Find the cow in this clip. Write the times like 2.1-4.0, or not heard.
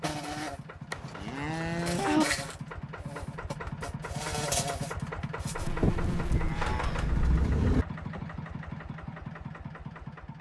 0.9-2.2, 5.8-7.8.